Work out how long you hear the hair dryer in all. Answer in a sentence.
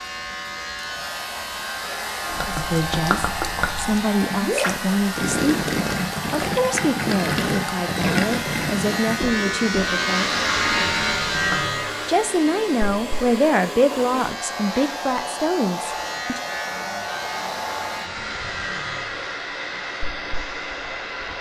The hair dryer can be heard for 21 seconds in total.